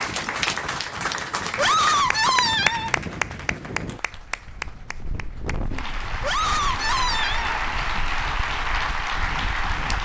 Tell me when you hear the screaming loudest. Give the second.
2 s.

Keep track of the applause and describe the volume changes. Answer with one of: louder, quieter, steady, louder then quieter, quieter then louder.
quieter then louder.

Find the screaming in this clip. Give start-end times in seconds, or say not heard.
1.6-3.0, 6.2-7.6.